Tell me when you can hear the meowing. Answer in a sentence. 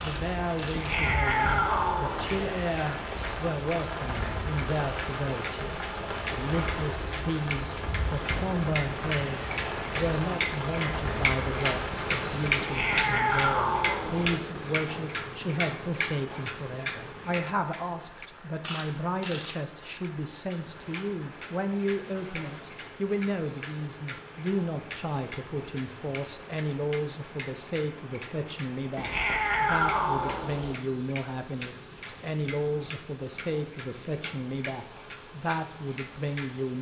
You can hear the meowing from 0.7 to 2.5 s, from 12.6 to 14.4 s and from 28.9 to 30.8 s.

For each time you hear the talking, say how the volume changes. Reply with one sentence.
You can hear the talking from 0.0 to 36.7 s, at a steady volume.